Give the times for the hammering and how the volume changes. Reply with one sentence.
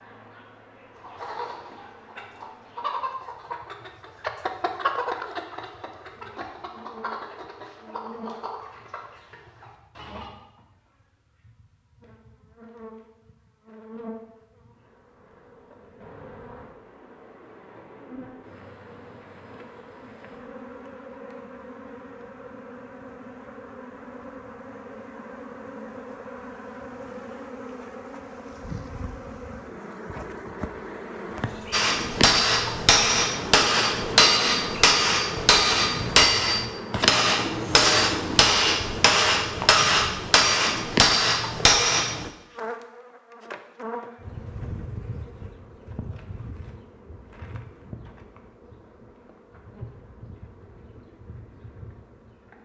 The hammering can be heard from 31.7 to 42.3 s, at a steady volume.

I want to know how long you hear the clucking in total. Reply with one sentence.
The clucking can be heard for 9 seconds in total.